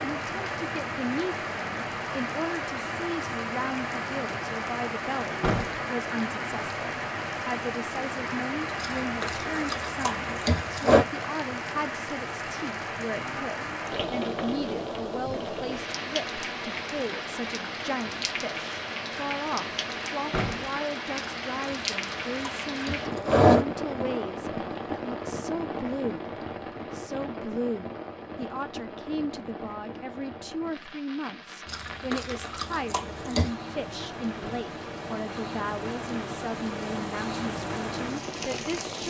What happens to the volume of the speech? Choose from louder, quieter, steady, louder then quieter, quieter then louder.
steady.